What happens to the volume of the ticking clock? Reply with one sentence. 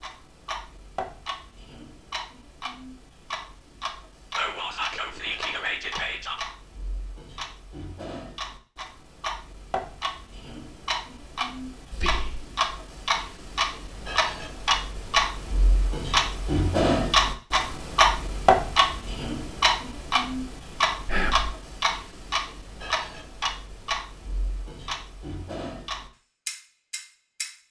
The loudness of the ticking clock goes up, then down.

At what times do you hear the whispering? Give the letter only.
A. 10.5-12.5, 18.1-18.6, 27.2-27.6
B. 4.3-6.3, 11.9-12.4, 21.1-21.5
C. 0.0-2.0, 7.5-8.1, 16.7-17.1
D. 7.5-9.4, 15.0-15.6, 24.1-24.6
B.